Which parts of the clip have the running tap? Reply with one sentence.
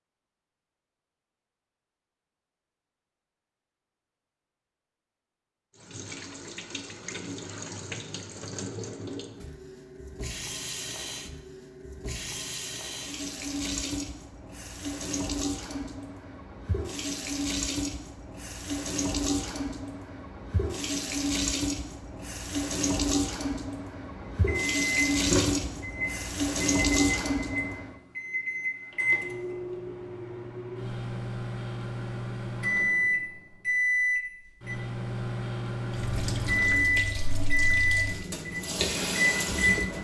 The running tap can be heard from 5.8 to 27.9 s and from 35.9 to 39.9 s.